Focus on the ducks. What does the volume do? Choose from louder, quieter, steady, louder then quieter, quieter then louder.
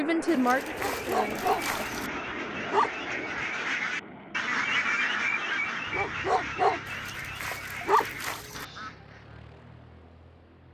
louder then quieter.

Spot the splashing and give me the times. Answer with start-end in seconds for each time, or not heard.
0.2-2.1, 6.8-8.7.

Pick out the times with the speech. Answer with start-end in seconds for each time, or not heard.
0.0-1.9.